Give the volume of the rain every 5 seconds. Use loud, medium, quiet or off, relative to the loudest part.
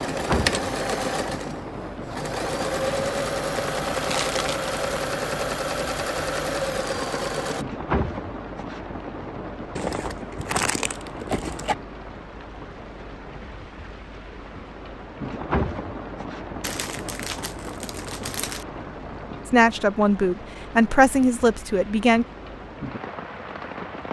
loud, loud, medium, loud, medium.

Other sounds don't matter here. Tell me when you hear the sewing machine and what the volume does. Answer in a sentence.
You can hear the sewing machine from 0.0 to 7.7 s, at a steady volume.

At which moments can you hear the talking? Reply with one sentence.
The talking can be heard from 19.4 to 22.2 s.